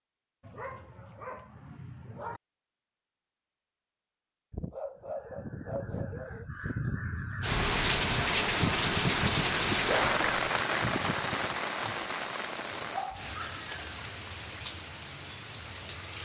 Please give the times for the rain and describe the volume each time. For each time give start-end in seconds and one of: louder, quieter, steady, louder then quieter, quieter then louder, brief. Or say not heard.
7.4-16.1 quieter.